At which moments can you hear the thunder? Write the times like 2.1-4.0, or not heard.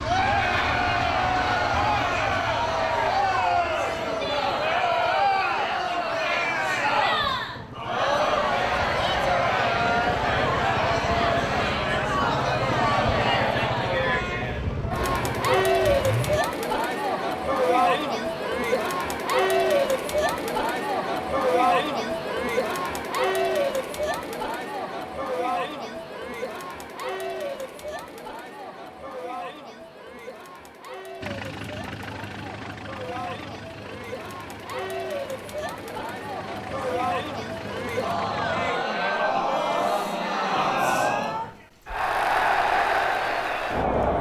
not heard.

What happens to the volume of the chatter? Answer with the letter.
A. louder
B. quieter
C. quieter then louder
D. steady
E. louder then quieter
C.